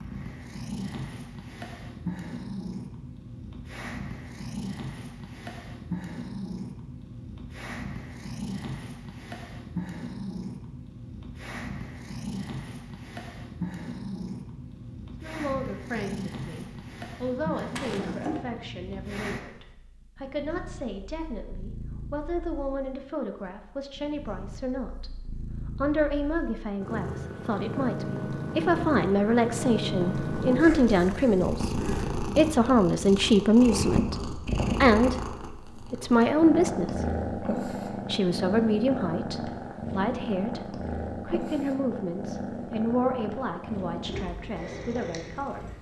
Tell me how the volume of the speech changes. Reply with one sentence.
The volume of the speech goes up, then down.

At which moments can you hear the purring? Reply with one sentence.
You can hear the purring from 0.0 to 45.7 s.